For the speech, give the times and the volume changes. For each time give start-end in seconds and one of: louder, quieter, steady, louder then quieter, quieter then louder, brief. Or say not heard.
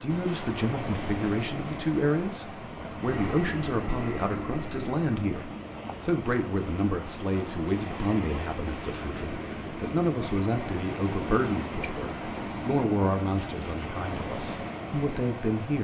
0.0-15.8 steady.